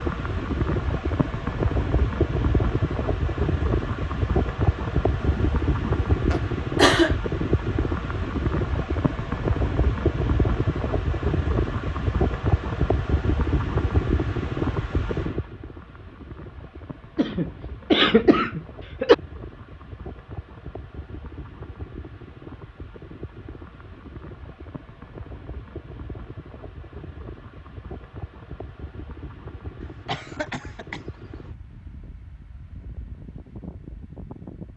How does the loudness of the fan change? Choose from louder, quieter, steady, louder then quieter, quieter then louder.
quieter.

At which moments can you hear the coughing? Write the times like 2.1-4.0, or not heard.
5.2-7.2, 17.1-19.1, 29.8-31.5.